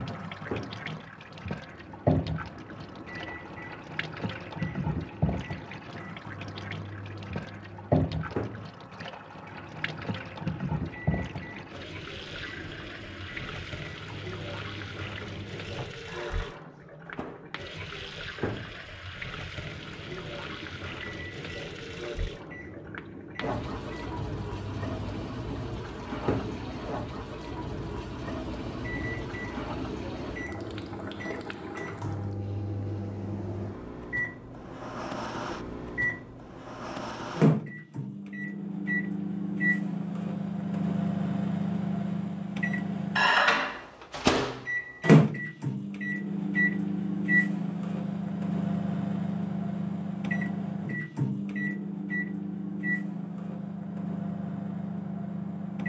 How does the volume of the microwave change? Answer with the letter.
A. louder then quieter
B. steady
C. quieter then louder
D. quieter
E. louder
E.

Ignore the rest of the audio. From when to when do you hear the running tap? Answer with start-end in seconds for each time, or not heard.
0.0-32.4.